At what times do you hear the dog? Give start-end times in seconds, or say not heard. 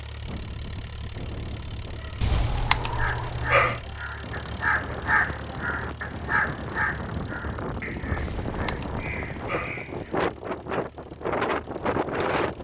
2.2-3.8, 8.2-9.8.